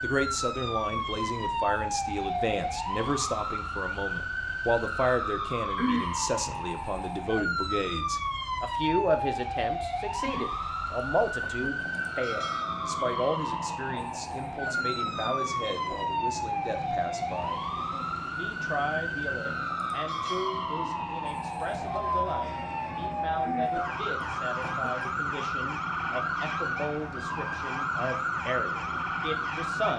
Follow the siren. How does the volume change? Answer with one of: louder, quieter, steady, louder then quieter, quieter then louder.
steady.